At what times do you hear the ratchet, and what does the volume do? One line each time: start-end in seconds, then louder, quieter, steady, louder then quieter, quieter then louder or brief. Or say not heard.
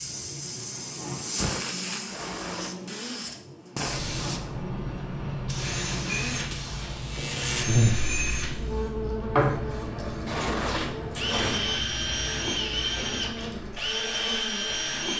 not heard.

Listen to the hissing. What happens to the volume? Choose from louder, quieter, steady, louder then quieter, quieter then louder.
quieter.